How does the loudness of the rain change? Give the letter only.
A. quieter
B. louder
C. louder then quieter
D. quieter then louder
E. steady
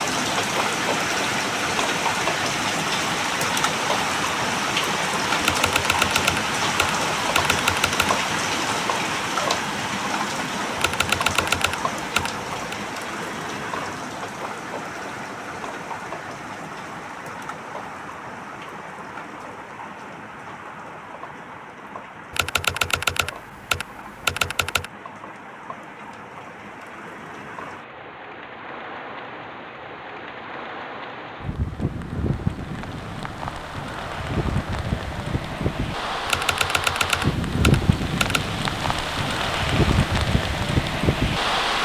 D.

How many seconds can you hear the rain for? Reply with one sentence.
The rain can be heard for 42 seconds in total.